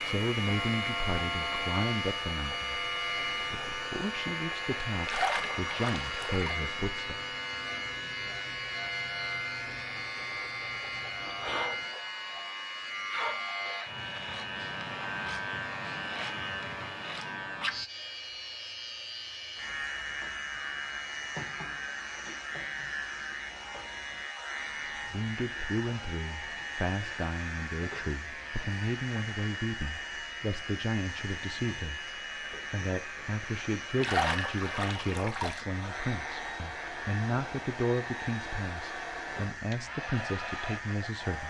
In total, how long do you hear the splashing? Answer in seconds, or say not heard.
3 s.